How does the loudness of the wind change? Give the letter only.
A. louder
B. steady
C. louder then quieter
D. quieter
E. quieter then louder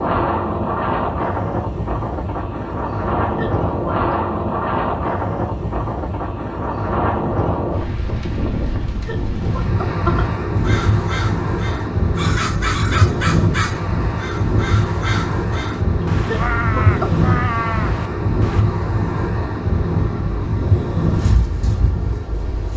B.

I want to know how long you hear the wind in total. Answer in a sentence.
You can hear the wind for 23 seconds altogether.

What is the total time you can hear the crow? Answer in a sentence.
You can hear the crow for 8 seconds altogether.